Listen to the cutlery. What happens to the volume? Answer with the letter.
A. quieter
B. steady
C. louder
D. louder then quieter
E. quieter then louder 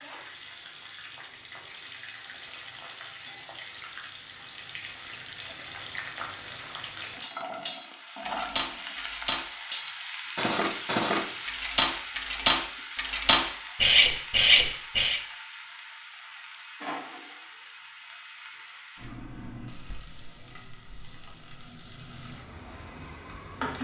C.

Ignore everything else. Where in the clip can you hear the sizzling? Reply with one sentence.
You can hear the sizzling from 0.0 to 23.7 s.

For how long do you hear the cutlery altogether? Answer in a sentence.
The cutlery can be heard for 8 seconds in total.